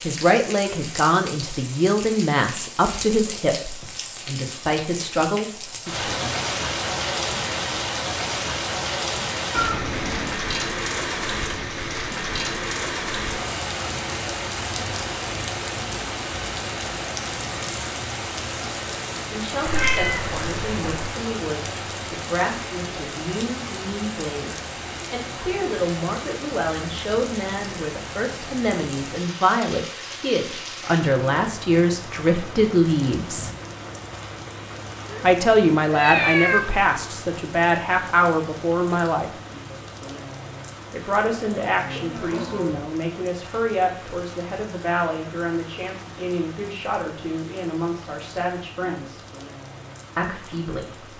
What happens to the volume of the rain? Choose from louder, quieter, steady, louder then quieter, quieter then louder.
quieter.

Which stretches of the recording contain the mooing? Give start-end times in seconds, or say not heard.
41.2-42.8.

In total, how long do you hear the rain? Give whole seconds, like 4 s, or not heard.
51 s.